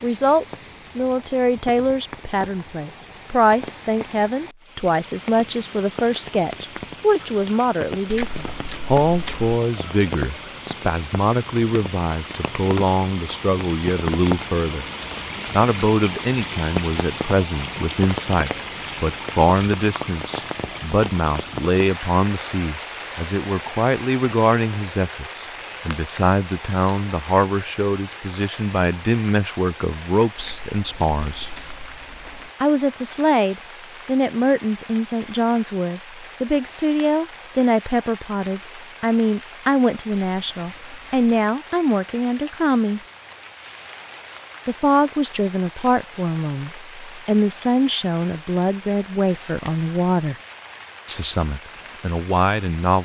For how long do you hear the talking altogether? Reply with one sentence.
The talking can be heard for 49 seconds in total.